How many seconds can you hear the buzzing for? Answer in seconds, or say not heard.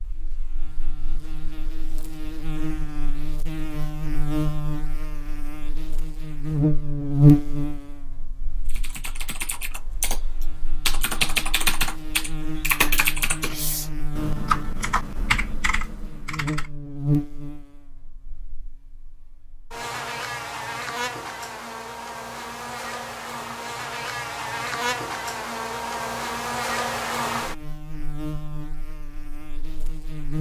30 s.